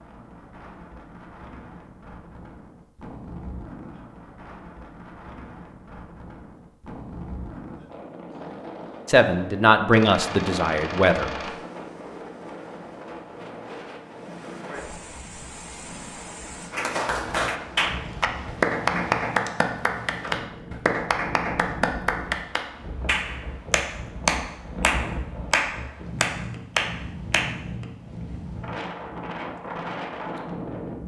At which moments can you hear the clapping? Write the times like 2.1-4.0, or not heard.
16.7-27.5.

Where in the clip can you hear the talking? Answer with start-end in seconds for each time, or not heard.
9.1-11.3.